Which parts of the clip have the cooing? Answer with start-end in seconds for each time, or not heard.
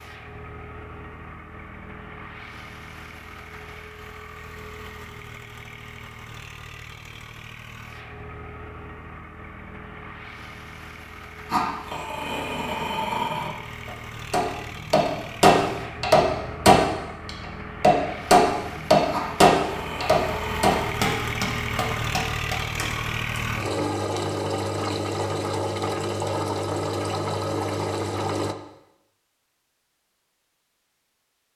not heard.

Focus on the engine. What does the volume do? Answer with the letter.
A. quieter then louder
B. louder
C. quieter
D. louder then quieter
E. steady
B.